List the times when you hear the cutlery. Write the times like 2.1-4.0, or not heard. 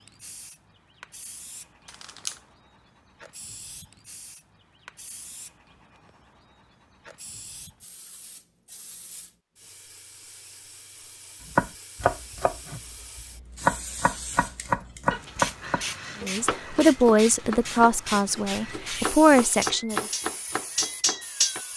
18.8-21.6.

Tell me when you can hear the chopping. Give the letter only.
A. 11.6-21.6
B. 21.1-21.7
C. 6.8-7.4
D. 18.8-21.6
A.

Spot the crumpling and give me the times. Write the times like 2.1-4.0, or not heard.
1.9-2.4.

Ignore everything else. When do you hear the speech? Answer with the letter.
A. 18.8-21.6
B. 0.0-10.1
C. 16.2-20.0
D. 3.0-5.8
C.